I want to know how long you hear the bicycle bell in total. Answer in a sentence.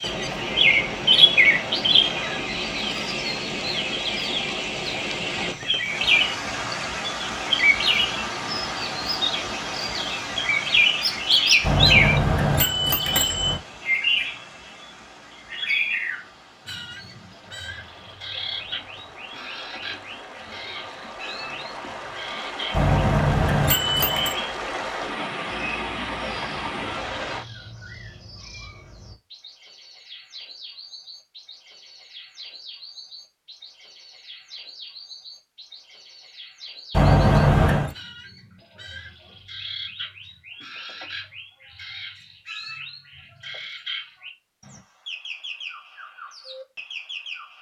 You can hear the bicycle bell for 5 seconds altogether.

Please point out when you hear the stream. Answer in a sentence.
You can hear the stream from 0.0 to 27.4 s.